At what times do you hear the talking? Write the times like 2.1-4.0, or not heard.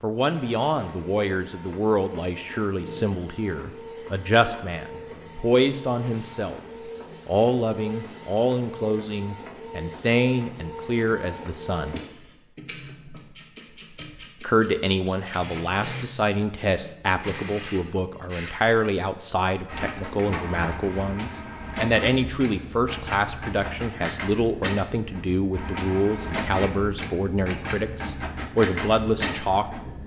0.0-6.6, 7.2-12.0, 14.4-29.9.